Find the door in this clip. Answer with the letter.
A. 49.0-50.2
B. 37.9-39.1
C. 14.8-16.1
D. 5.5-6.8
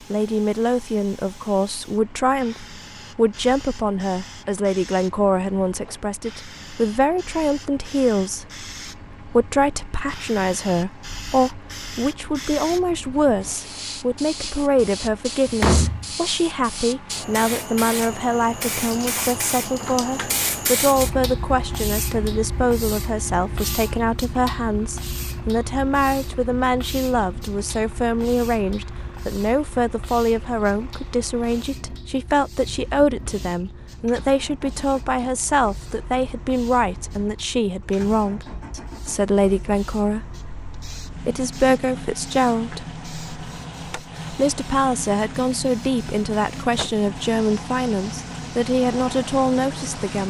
C.